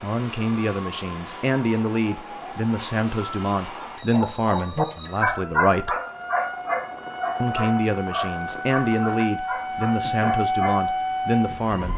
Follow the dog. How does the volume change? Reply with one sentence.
The volume of the dog goes down.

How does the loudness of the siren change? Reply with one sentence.
The loudness of the siren goes up.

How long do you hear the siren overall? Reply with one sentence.
You can hear the siren for 12 seconds altogether.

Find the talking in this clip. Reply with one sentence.
The talking can be heard from 0.0 to 6.0 s and from 7.4 to 11.9 s.